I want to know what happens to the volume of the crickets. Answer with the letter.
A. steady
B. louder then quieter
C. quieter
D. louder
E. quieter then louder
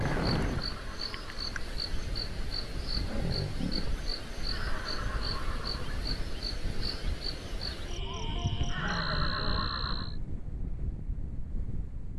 A.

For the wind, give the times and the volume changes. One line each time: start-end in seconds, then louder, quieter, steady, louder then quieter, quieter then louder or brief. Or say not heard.
0.0-12.1 steady.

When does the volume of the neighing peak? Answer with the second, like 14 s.
9 s.